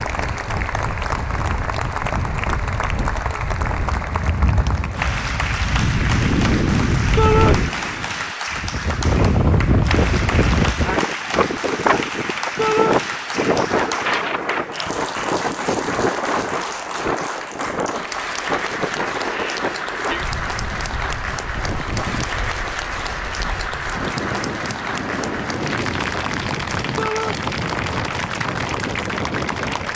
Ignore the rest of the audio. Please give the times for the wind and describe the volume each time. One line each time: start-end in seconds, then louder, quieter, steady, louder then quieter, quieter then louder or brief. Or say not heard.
0.0-29.9 louder then quieter.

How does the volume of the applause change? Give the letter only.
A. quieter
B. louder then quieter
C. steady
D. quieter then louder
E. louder
C.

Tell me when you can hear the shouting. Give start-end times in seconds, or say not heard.
7.2-7.6, 12.6-13.0, 26.9-27.4.